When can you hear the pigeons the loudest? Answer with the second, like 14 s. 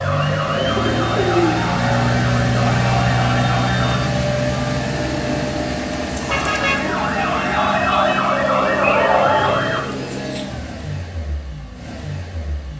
1 s.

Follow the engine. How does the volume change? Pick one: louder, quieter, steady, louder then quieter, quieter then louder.
quieter.